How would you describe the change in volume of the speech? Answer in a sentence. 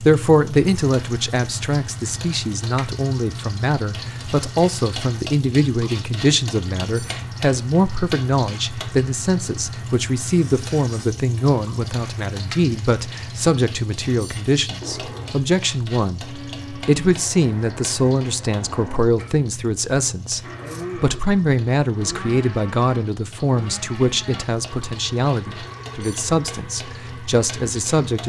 The volume of the speech stays about the same.